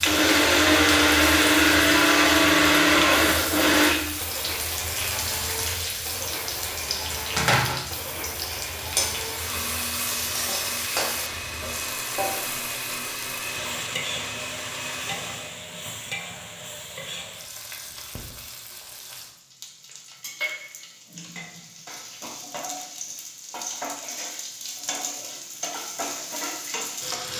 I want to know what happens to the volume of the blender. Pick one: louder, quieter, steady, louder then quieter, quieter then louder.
quieter.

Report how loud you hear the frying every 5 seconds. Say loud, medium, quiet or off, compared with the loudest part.
loud, loud, loud, medium, medium, loud.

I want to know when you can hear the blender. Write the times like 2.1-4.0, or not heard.
0.0-15.7.